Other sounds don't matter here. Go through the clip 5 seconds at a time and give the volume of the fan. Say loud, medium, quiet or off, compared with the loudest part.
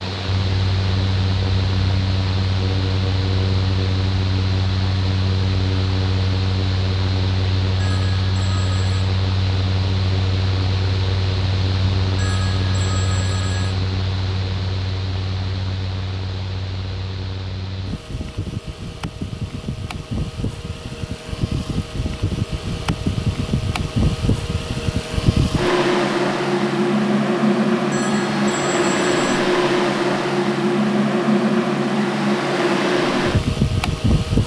medium, medium, medium, quiet, medium, loud, loud.